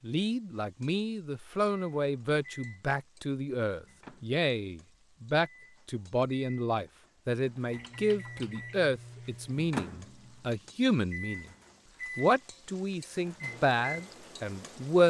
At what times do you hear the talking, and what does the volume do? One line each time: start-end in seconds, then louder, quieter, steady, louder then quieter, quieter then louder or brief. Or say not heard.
0.0-11.4 steady
12.2-15.0 brief.